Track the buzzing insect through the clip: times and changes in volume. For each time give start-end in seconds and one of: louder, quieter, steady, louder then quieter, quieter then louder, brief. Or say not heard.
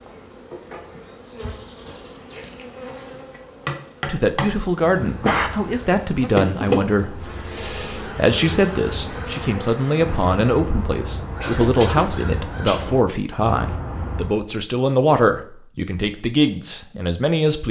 0.0-10.8 louder then quieter.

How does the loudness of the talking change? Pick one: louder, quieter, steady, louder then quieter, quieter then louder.
steady.